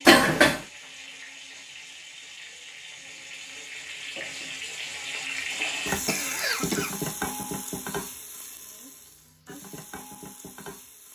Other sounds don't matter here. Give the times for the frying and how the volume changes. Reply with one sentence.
You can hear the frying from 0.0 to 11.1 s, getting louder then quieter.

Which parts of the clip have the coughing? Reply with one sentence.
You can hear the coughing from 0.1 to 0.6 s and from 6.0 to 6.9 s.